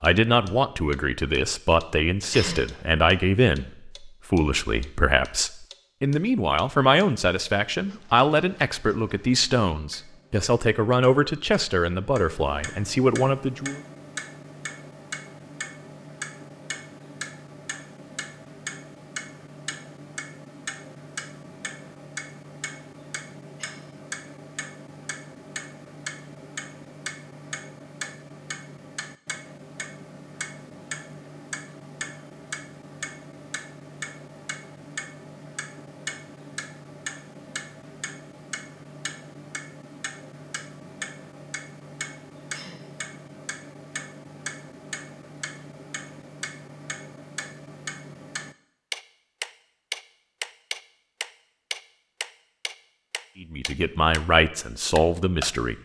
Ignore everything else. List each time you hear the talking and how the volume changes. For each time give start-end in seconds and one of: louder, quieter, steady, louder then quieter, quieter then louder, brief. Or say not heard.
0.0-13.8 steady
53.4-55.8 brief.